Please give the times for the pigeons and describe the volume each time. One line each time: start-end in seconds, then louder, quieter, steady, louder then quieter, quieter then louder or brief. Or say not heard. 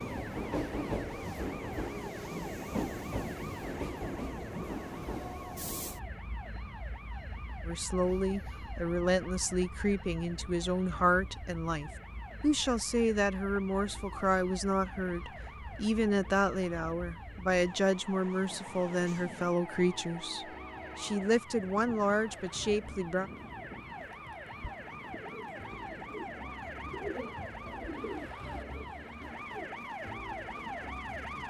24.9-30.1 louder then quieter.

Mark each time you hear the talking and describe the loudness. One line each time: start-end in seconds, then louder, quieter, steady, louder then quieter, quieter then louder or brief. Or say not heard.
7.7-23.3 steady.